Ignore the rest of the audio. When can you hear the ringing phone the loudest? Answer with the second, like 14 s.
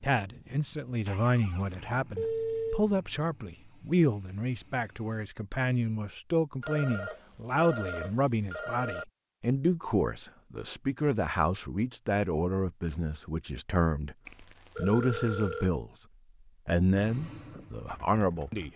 2 s.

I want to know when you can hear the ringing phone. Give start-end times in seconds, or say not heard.
1.7-2.9, 6.6-9.1, 14.2-15.7.